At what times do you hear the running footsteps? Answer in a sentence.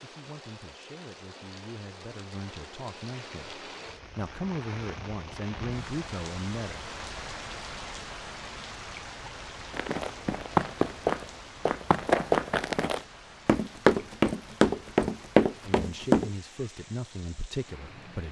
You can hear the running footsteps from 9.7 to 16.3 s.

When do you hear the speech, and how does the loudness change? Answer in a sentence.
You can hear the speech from 0.0 to 6.8 s, getting louder; and briefly from 15.7 to 18.2 s.